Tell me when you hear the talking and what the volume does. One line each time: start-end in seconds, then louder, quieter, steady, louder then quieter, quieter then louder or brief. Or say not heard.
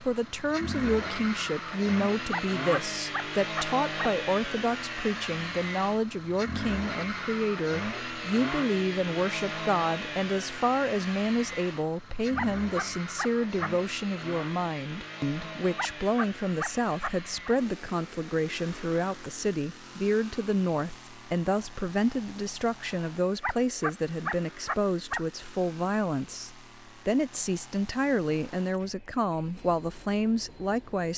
0.0-31.1 steady.